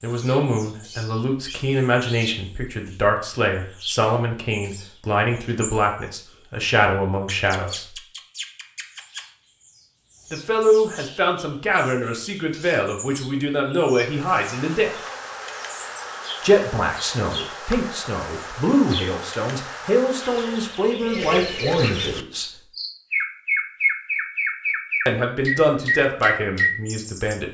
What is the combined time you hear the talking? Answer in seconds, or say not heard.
21 s.